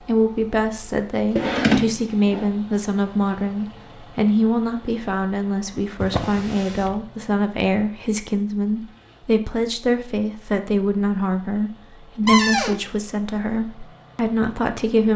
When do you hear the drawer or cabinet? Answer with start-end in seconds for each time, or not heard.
1.4-2.5, 6.0-7.0, 12.2-12.8.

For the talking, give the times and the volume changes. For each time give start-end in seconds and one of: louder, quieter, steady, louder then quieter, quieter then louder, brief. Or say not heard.
0.0-15.1 steady.